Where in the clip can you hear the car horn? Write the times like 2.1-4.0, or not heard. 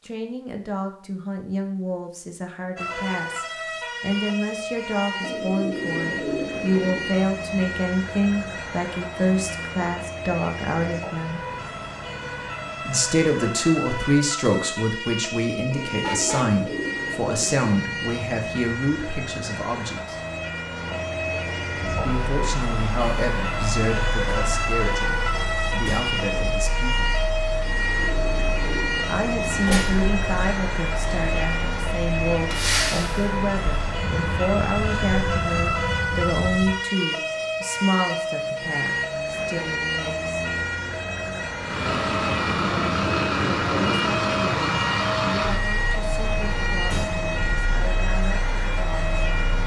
16.0-16.6, 25.0-25.6.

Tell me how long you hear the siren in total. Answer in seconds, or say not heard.
47 s.